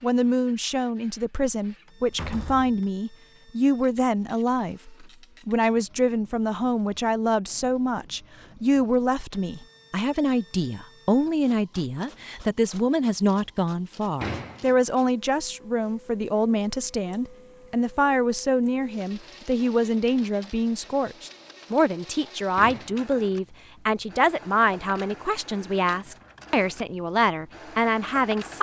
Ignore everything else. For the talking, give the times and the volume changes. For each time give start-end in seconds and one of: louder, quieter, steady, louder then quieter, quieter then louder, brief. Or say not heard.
0.0-28.5 steady.